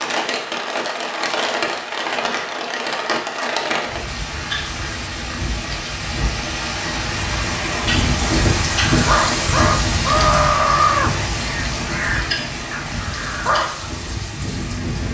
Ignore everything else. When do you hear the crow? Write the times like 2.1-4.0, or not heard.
8.9-13.9.